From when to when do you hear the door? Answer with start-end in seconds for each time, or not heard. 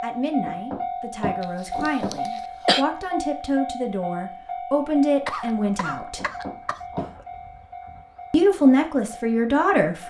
0.5-2.1, 6.2-7.2.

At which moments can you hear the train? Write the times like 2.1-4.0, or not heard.
0.0-10.0.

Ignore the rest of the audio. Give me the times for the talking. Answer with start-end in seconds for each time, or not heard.
0.0-6.2, 8.3-10.0.